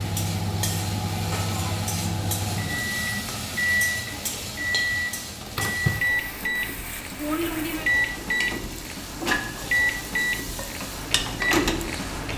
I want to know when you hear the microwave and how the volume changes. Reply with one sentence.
The microwave can be heard from 0.0 to 12.3 s, at a steady volume.